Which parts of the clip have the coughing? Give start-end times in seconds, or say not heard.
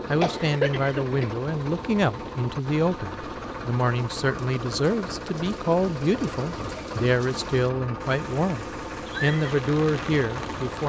0.2-1.4.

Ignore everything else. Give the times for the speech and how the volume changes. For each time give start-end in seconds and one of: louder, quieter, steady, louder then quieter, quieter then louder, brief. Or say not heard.
0.1-10.8 steady.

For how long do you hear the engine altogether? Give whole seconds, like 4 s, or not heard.
11 s.